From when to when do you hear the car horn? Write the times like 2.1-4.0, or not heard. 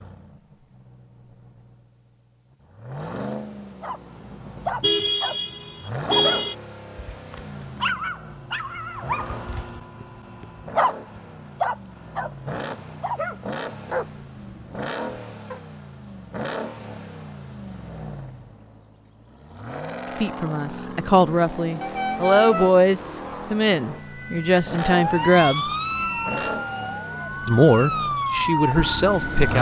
4.8-6.5, 21.8-23.6.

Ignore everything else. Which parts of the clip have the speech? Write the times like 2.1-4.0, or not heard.
20.2-25.6, 27.4-29.5.